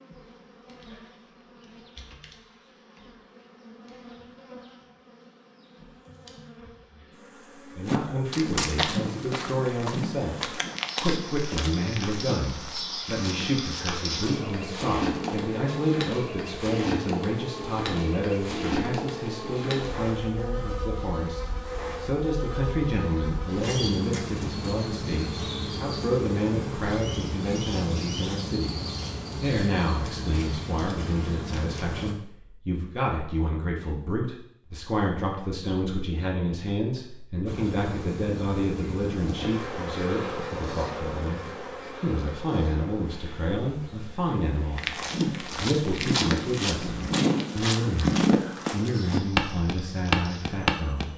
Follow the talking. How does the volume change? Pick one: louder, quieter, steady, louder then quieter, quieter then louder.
steady.